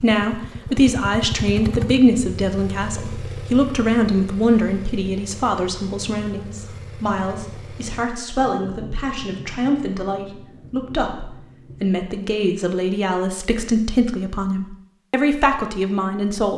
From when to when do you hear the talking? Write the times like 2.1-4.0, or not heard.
0.0-16.5.